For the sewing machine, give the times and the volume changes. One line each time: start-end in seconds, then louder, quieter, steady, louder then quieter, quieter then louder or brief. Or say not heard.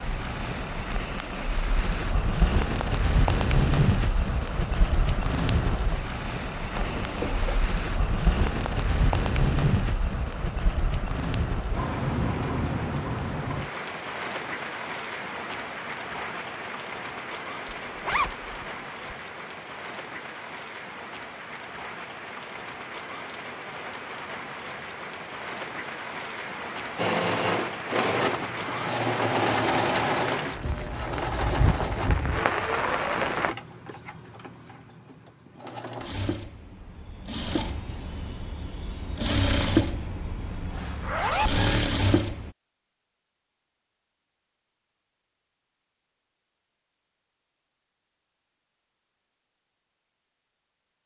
26.9-42.5 quieter then louder.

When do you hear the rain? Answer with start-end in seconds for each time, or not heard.
0.0-33.5.